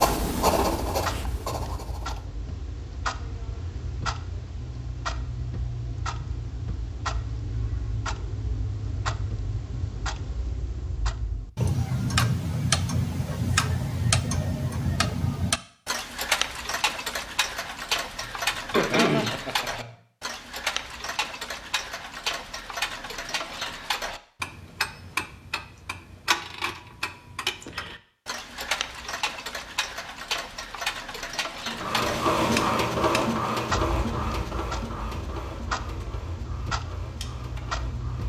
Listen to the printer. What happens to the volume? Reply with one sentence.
The volume of the printer goes down.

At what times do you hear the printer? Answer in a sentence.
You can hear the printer from 31.6 to 38.2 s.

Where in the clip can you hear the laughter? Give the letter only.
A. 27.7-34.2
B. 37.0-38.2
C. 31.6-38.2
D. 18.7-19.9
D.